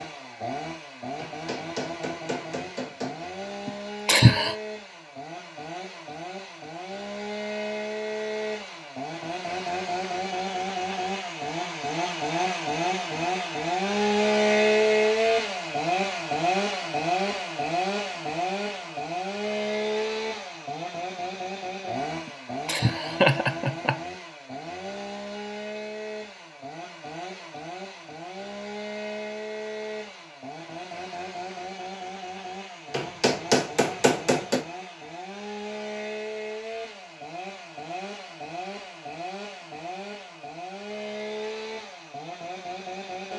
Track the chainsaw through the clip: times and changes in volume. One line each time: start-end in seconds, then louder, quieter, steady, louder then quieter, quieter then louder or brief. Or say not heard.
0.0-43.3 louder then quieter.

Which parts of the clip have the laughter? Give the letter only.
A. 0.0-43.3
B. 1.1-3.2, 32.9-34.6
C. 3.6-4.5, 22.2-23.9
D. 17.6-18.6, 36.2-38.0
C.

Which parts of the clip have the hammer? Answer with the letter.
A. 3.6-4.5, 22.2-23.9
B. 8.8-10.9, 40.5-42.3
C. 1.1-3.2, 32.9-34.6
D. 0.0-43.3
C.